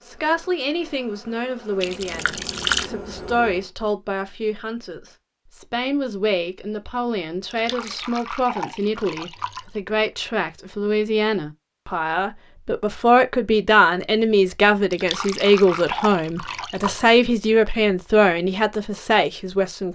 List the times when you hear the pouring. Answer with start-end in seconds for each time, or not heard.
1.8-2.9, 7.5-9.8, 14.9-17.0.